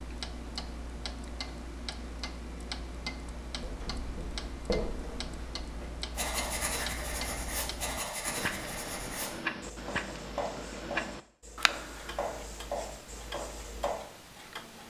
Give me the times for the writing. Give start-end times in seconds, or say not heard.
3.5-14.1.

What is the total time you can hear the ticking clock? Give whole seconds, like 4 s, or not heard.
15 s.